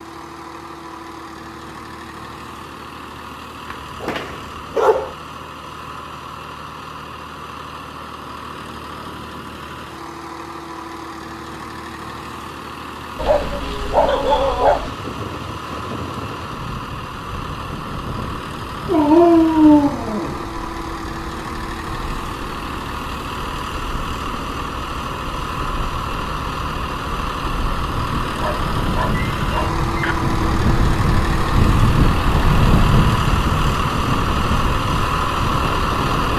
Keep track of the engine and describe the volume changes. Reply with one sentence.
The loudness of the engine goes up.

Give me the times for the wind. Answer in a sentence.
The wind can be heard from 14.8 to 36.3 s.